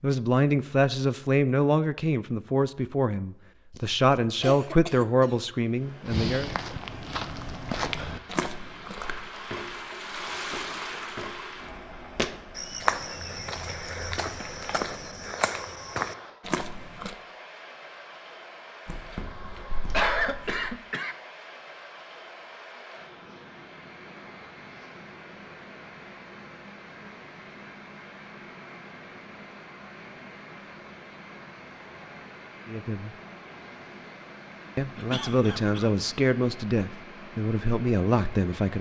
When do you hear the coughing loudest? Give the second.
20 s.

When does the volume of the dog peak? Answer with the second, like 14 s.
20 s.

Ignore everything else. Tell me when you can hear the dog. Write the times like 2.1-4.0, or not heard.
18.9-20.7.